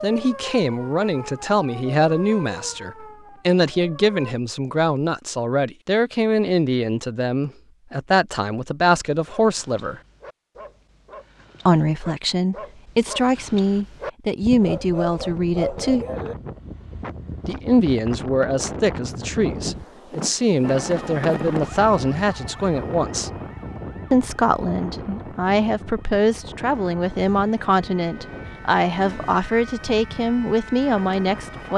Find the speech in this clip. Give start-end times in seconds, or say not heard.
0.0-10.0, 11.7-16.1, 17.4-23.3, 24.1-31.7.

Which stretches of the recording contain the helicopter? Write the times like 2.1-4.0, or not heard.
not heard.